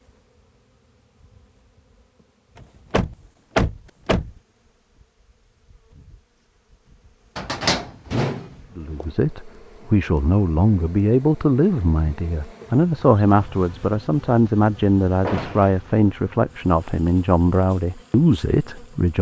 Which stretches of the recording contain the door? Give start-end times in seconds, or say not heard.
2.9-4.3, 7.3-9.1, 15.2-15.8.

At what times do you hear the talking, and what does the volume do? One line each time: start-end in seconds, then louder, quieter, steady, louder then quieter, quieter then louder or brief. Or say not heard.
8.8-19.1 steady.